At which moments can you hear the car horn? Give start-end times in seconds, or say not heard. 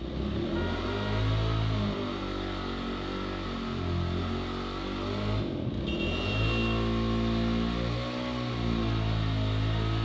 0.5-1.3, 5.8-6.8.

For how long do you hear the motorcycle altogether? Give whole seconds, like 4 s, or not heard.
10 s.